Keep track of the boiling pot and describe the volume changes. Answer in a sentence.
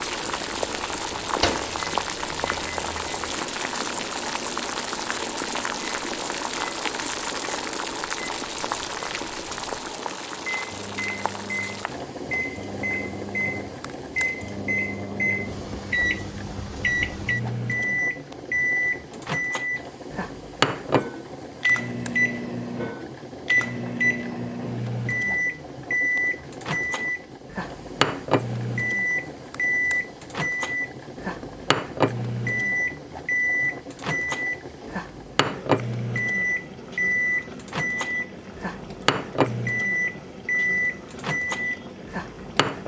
The loudness of the boiling pot goes down.